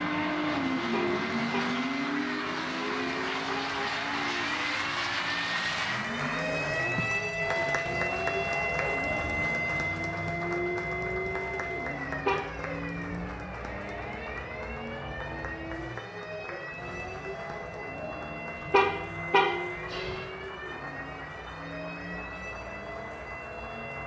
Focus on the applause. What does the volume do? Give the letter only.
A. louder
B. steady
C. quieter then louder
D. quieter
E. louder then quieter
D.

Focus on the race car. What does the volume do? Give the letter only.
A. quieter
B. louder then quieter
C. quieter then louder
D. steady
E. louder
A.